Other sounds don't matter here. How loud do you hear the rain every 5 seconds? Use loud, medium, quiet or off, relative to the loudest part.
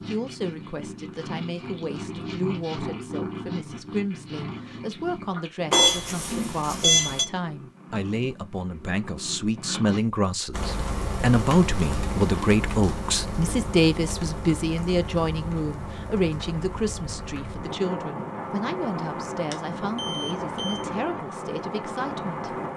off, off, loud, loud, loud.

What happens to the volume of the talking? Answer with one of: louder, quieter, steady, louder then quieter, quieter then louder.
louder then quieter.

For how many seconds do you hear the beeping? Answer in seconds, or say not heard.
3 s.